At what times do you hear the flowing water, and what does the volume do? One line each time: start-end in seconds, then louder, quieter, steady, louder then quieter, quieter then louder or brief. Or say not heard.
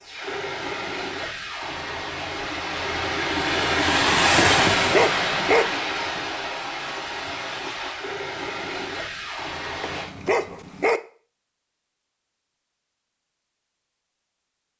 0.0-10.1 louder then quieter.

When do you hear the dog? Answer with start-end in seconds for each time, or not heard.
4.8-5.7, 9.8-11.0.